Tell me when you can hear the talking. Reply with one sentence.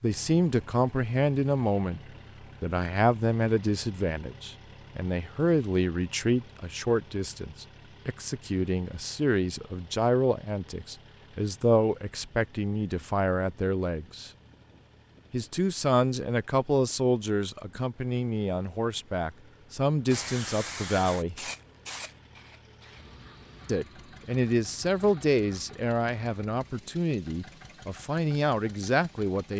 The talking can be heard from 0.0 to 2.0 s, from 2.6 to 14.3 s, from 15.3 to 21.4 s and from 23.6 to 29.5 s.